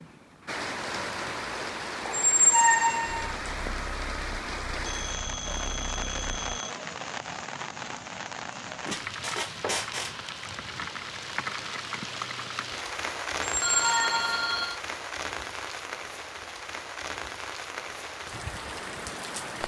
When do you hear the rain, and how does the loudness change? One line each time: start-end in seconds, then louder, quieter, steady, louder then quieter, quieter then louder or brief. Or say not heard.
0.0-19.6 steady.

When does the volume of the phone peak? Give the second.
14 s.